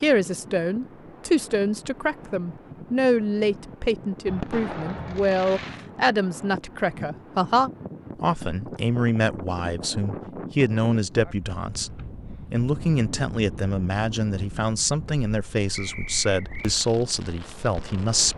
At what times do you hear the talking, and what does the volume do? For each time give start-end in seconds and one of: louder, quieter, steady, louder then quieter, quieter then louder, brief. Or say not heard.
0.0-18.3 steady.